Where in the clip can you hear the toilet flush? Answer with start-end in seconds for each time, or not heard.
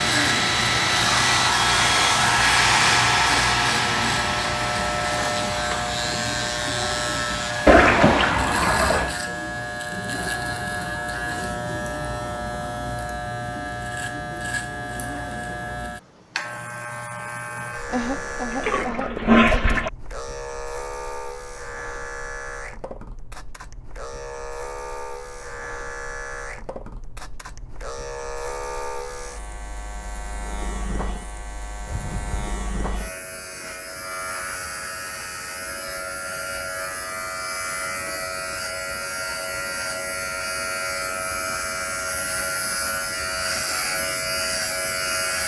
7.7-9.2, 17.9-19.9, 31.9-32.6.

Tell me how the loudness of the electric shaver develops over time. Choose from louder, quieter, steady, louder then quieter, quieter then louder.
quieter then louder.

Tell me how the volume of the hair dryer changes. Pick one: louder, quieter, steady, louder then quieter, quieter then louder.
quieter.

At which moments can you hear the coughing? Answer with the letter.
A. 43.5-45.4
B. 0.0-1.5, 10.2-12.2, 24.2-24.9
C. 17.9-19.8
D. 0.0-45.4
C.